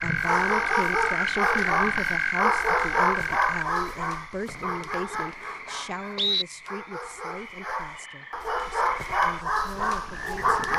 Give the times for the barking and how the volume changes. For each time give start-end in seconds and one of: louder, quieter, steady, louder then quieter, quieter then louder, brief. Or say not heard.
0.0-10.7 quieter then louder.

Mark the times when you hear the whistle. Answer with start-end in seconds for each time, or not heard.
4.5-6.5.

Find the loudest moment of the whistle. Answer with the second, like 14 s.
6 s.